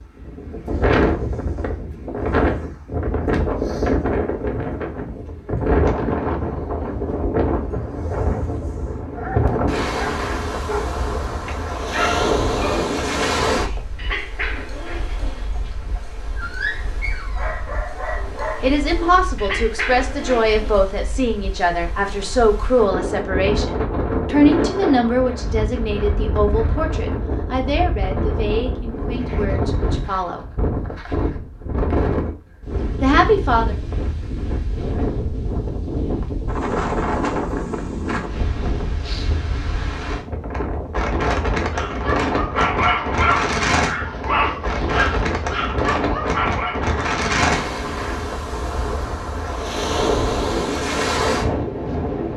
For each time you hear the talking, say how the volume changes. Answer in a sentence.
You can hear the talking from 18.6 to 30.4 s, getting quieter; and briefly from 33.0 to 33.8 s.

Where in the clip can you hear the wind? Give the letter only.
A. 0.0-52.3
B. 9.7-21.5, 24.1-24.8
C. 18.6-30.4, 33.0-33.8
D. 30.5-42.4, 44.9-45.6
A.